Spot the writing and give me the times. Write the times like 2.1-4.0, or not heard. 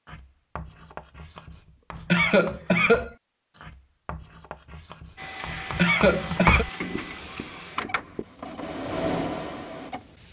0.1-8.2.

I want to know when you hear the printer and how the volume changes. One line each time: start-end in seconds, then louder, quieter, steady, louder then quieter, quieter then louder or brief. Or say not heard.
5.2-10.2 louder.